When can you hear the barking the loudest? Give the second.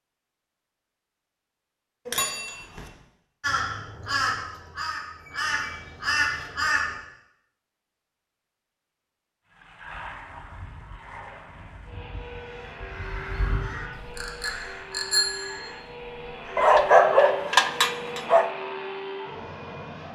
17 s.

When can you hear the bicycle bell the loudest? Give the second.
15 s.